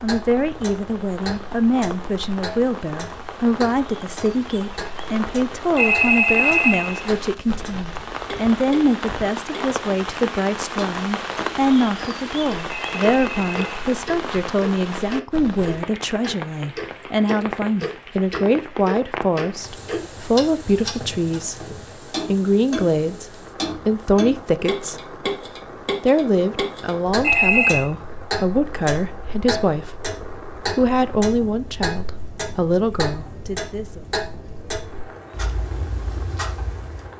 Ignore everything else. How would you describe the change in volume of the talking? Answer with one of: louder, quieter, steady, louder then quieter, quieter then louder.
steady.